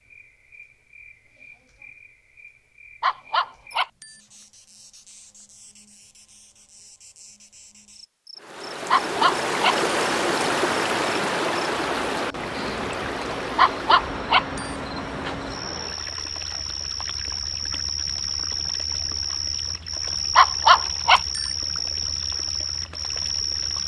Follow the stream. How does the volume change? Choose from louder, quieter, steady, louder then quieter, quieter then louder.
quieter.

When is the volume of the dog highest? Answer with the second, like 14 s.
21 s.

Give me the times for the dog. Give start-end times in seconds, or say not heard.
3.0-4.1, 8.9-9.9, 13.6-14.7, 20.4-21.4.